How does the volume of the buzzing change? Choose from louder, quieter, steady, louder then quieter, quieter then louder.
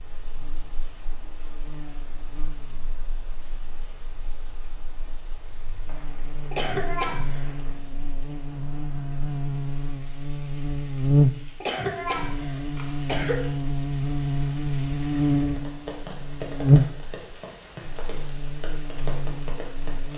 louder.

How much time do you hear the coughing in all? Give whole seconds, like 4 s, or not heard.
3 s.